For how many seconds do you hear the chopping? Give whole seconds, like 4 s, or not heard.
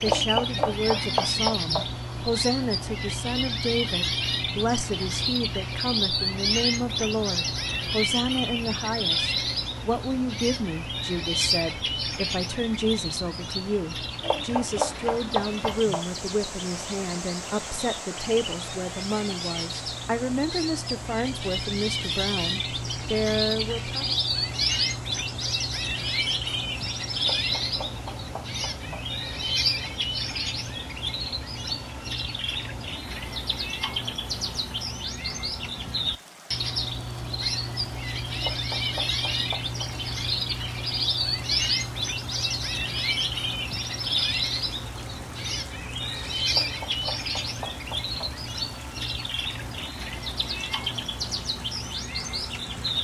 9 s.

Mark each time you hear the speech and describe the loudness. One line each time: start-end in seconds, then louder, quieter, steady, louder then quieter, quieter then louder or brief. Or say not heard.
0.0-24.1 steady.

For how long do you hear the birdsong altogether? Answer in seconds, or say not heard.
53 s.